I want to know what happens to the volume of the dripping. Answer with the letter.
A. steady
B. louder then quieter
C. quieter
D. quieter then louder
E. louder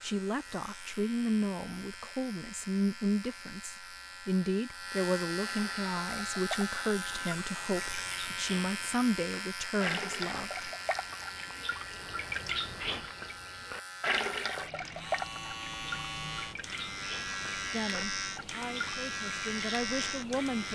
B.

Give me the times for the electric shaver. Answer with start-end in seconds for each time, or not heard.
0.0-20.7.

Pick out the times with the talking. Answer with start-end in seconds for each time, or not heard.
0.0-10.7, 17.7-20.7.